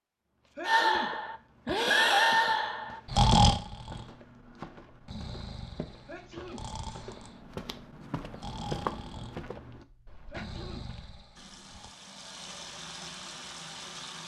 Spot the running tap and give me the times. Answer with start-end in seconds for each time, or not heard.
11.3-14.2.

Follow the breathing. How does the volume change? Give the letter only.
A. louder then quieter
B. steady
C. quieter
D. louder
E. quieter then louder
C.